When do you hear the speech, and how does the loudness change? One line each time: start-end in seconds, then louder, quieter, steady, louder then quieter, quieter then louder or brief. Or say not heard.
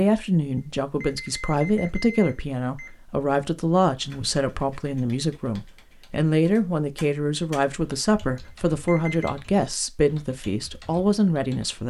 0.0-11.8 steady.